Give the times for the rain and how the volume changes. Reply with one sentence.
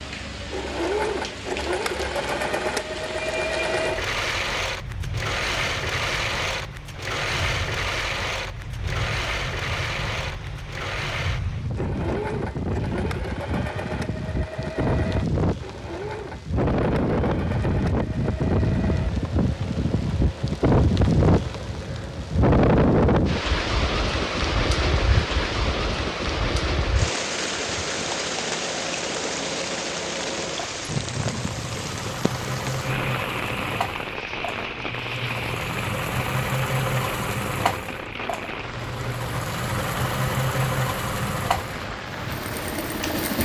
The rain can be heard from 0.0 to 43.4 s, getting louder then quieter.